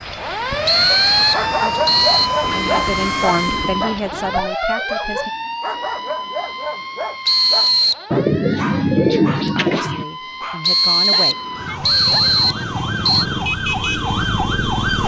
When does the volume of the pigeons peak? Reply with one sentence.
The volume of the pigeons peaks at 9 seconds.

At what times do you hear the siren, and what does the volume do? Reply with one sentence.
You can hear the siren from 0.0 to 15.0 s, getting quieter then louder.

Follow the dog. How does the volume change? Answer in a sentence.
The loudness of the dog goes down.